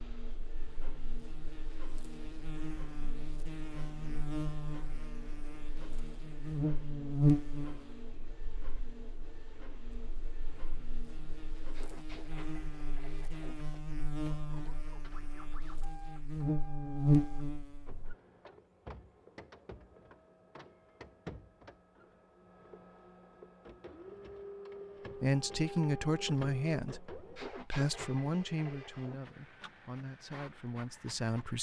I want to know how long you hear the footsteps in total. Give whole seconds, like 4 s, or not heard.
not heard.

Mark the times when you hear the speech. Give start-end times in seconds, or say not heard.
25.1-31.5.